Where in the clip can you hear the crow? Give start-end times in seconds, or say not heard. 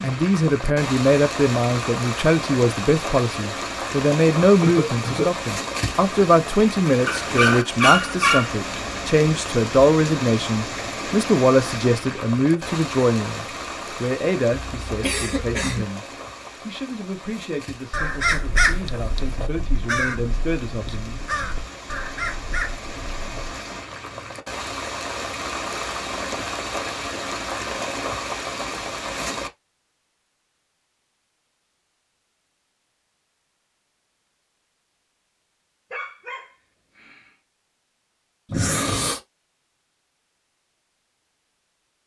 17.9-23.6.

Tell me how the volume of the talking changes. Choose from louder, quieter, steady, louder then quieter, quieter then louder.
quieter.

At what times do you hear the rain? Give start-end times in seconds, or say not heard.
0.0-29.5.